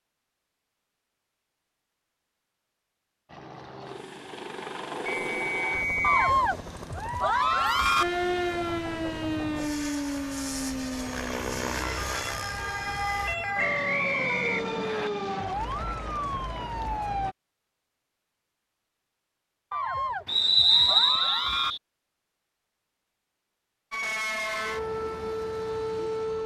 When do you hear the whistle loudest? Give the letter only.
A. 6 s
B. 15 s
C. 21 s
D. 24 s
C.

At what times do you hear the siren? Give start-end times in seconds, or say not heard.
8.0-17.4, 23.9-26.4.